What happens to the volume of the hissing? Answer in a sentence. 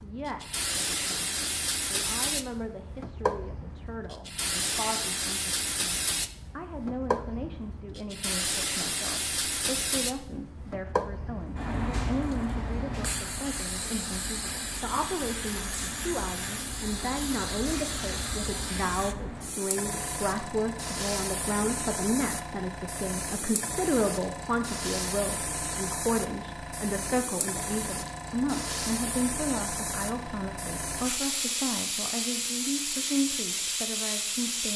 The loudness of the hissing stays about the same.